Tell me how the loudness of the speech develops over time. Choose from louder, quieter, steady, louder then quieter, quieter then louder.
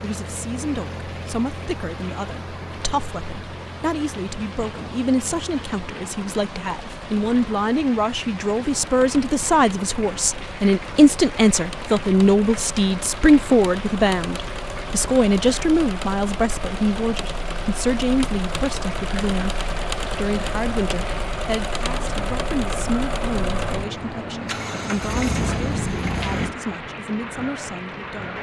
louder then quieter.